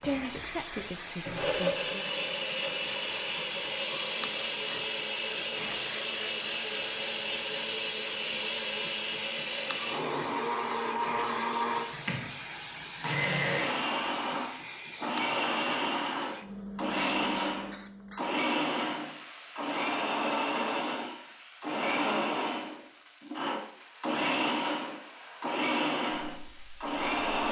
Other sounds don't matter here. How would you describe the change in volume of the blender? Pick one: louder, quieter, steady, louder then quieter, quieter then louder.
steady.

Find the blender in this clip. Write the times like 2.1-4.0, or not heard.
0.0-27.4.